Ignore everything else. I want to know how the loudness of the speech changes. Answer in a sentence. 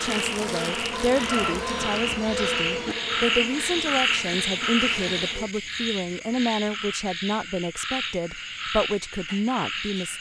The loudness of the speech stays about the same.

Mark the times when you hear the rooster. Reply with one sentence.
The rooster can be heard from 0.9 to 3.0 s.